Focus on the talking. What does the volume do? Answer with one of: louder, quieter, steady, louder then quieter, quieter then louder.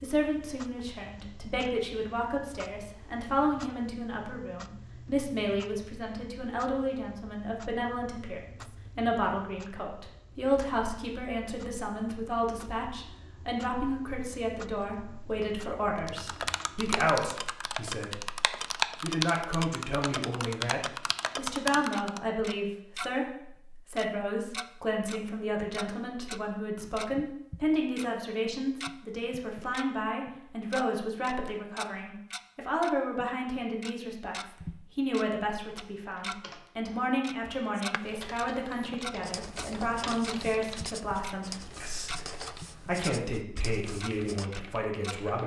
steady.